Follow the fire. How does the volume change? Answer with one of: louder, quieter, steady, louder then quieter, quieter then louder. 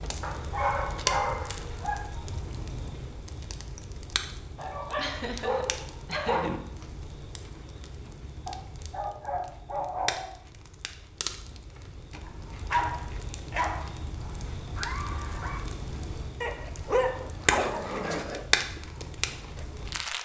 quieter then louder.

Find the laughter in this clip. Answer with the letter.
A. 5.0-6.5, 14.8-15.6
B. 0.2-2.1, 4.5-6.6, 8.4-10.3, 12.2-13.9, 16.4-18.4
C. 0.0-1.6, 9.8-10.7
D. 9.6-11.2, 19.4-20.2
A.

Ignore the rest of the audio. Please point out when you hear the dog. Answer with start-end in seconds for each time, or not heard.
0.2-2.1, 4.5-6.6, 8.4-10.3, 12.2-13.9, 16.4-18.4.